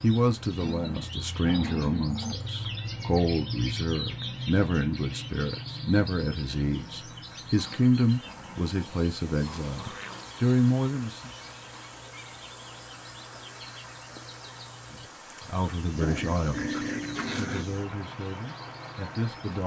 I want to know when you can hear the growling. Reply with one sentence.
The growling can be heard from 0.6 to 2.4 s, from 7.5 to 10.3 s and from 16.0 to 17.6 s.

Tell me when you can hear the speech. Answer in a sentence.
The speech can be heard from 0.0 to 11.3 s and from 15.4 to 19.6 s.